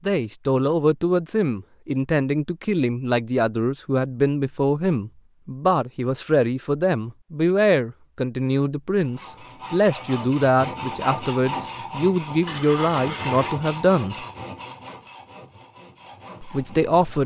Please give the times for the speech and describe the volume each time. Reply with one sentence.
The speech can be heard from 0.1 to 14.2 s, at a steady volume; and briefly from 16.4 to 17.2 s.